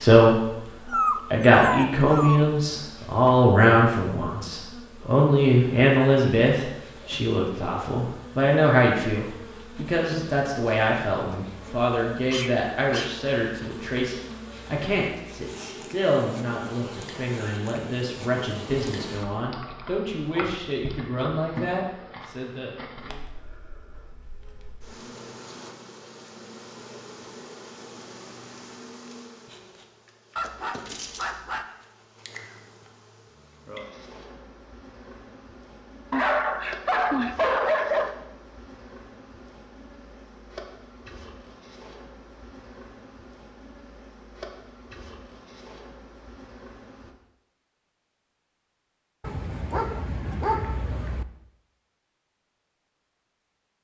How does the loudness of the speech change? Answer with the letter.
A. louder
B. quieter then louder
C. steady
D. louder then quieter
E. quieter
E.